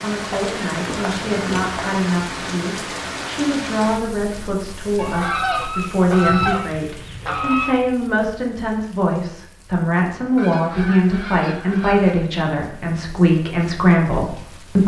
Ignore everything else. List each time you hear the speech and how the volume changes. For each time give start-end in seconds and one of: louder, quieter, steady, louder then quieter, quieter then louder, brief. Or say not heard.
0.0-14.8 louder.